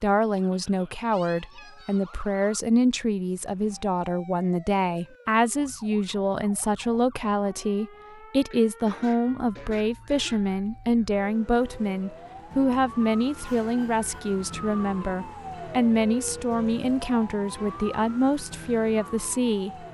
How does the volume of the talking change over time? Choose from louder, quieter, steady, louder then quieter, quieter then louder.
steady.